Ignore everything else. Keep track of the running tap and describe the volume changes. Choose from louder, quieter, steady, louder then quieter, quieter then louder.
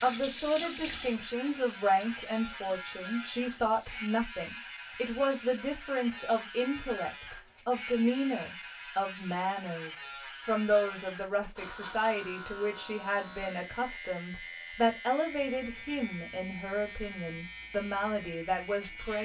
quieter.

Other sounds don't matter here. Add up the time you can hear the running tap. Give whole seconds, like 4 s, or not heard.
4 s.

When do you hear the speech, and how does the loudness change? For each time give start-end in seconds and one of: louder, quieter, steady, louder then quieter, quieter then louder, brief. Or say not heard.
0.0-19.2 steady.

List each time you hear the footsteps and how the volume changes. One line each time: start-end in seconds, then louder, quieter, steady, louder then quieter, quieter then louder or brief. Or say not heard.
not heard.